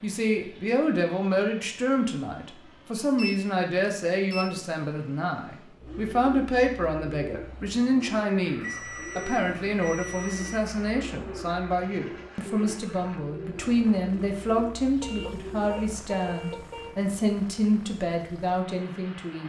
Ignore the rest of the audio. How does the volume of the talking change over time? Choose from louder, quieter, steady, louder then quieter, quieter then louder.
steady.